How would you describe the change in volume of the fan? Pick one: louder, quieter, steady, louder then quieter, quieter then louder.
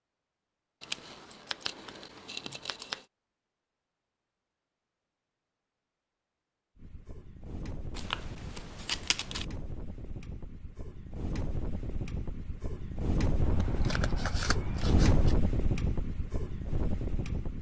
louder.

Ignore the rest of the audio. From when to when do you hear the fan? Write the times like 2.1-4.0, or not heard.
6.8-17.5.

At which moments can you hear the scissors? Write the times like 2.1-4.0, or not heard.
0.8-3.0, 8.0-9.4, 13.4-15.3.